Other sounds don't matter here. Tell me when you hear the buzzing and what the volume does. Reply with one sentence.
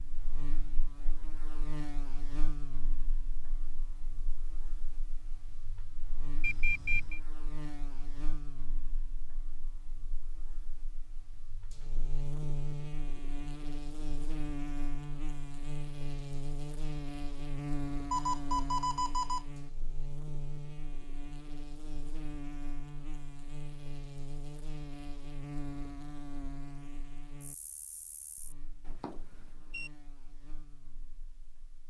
The buzzing can be heard from 0.0 to 31.8 s, getting louder then quieter.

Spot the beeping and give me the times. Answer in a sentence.
You can hear the beeping from 6.4 to 7.2 s, from 18.1 to 19.5 s and from 28.9 to 29.9 s.